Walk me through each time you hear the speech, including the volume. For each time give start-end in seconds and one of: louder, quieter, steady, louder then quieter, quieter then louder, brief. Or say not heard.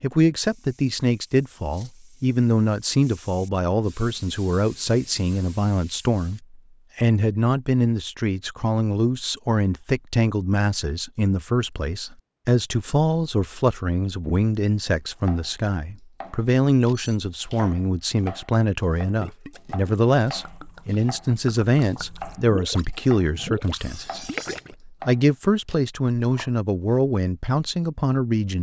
0.0-28.5 steady.